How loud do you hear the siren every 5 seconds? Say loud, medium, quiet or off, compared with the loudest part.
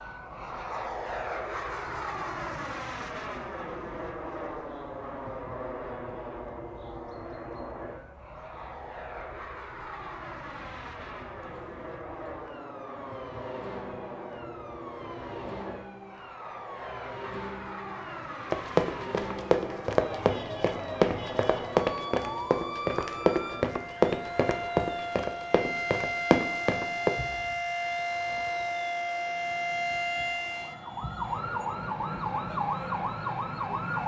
quiet, quiet, quiet, medium, medium, loud, loud.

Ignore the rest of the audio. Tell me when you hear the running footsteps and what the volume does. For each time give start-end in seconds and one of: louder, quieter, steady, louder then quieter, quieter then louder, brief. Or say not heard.
18.5-27.1 steady.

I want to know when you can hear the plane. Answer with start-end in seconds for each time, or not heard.
0.0-34.0.